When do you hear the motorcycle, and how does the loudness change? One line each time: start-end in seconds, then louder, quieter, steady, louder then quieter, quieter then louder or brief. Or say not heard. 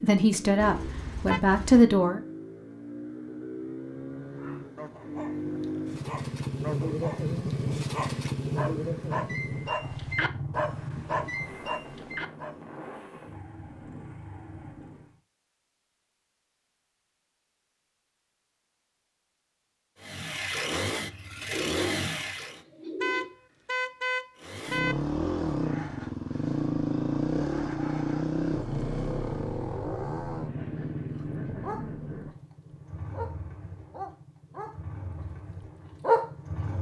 0.0-15.2 louder then quieter
20.0-22.6 brief
24.4-36.7 quieter.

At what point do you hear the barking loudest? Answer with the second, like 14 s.
36 s.